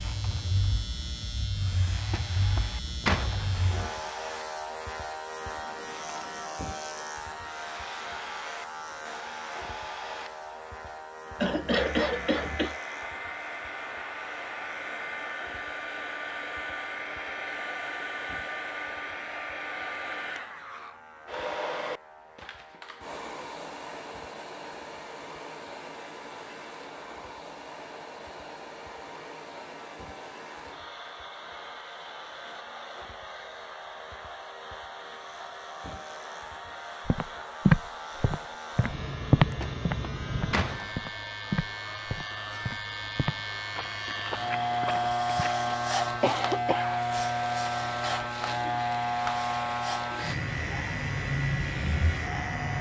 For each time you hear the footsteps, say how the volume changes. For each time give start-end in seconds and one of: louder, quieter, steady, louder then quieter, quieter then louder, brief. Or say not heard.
37.0-45.8 quieter.